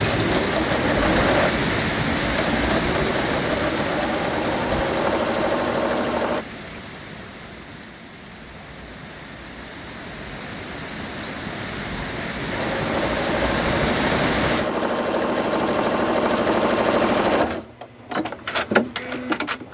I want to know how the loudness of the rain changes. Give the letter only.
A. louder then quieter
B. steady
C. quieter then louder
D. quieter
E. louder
C.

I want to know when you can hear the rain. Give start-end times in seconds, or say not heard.
0.0-14.7.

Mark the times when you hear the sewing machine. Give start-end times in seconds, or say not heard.
0.0-6.5, 12.5-19.6.